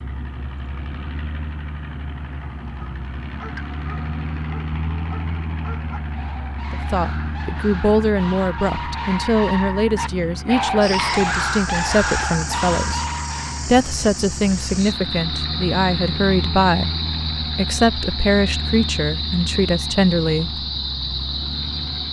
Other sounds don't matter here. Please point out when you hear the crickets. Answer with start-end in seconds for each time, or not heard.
10.8-22.0.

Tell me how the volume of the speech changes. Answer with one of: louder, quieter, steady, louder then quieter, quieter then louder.
steady.